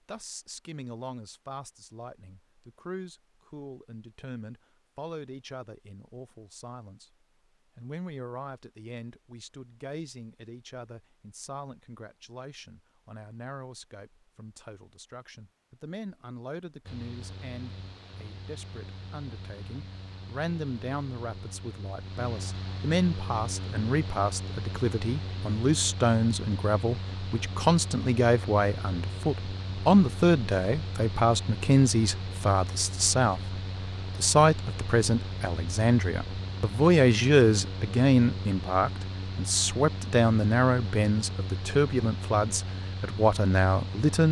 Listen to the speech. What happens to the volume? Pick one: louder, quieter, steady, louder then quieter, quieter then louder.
louder.